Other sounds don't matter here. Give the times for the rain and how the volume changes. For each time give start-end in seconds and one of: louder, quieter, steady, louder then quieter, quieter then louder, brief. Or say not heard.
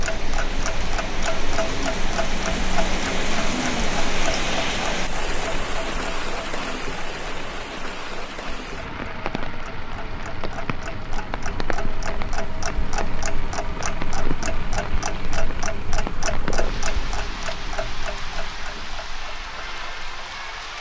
0.0-20.7 quieter.